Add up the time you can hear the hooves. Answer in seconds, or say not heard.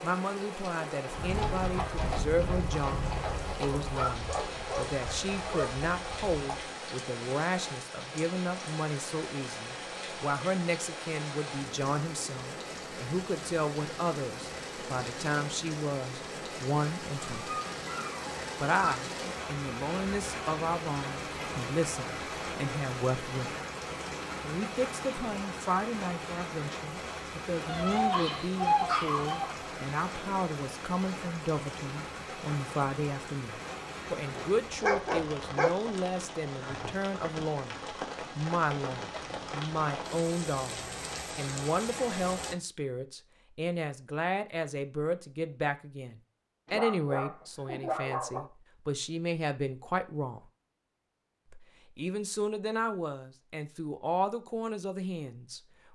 6 s.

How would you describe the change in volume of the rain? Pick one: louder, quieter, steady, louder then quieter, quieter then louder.
steady.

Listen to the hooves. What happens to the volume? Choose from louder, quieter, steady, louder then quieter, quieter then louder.
quieter.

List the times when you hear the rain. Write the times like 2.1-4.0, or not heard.
0.0-42.5.